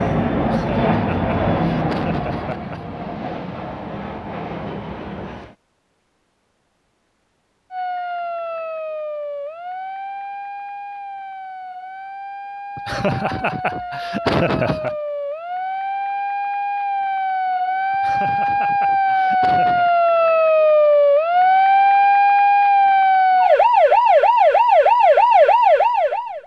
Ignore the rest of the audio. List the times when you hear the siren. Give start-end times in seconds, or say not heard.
7.7-26.4.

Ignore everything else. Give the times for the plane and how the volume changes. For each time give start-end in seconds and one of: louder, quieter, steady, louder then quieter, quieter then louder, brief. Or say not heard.
0.0-5.5 quieter.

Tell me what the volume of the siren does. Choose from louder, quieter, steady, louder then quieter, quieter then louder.
louder.